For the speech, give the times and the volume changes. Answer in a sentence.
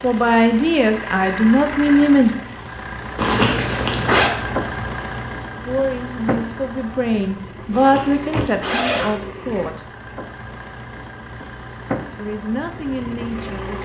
The speech can be heard briefly from 0.0 to 2.3 s; from 5.7 to 9.8 s, getting louder then quieter; and briefly from 12.2 to 13.8 s.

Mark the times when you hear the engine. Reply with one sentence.
You can hear the engine from 0.0 to 13.8 s.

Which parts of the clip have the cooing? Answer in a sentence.
You can't hear the cooing here.